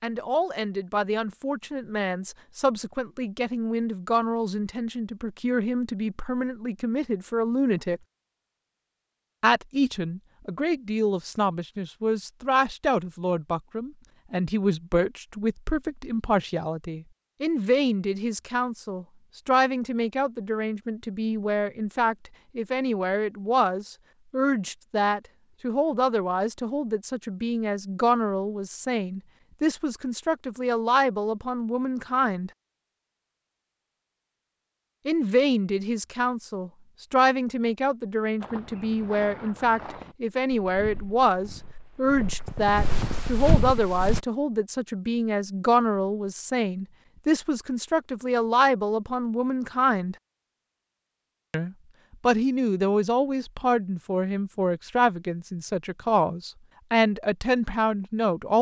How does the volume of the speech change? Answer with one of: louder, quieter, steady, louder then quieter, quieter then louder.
steady.